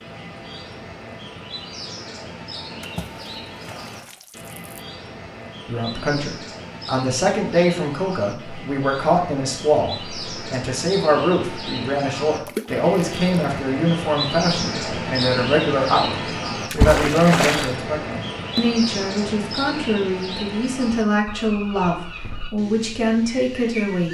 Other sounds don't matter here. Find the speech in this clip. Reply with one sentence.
The speech can be heard from 5.7 to 24.0 s.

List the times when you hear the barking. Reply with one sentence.
The barking can't be heard in this clip.